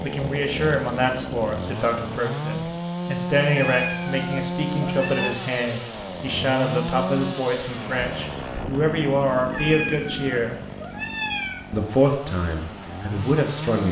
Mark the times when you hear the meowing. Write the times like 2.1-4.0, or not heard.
3.5-5.3, 9.5-11.9.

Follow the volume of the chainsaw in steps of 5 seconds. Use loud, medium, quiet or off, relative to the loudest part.
loud, loud, medium.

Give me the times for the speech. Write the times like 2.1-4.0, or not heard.
0.0-10.6, 11.7-13.8.